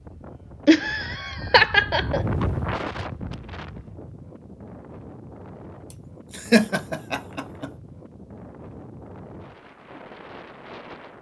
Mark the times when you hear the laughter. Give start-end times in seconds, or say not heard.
0.7-2.2, 5.9-7.7.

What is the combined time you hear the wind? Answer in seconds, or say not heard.
11 s.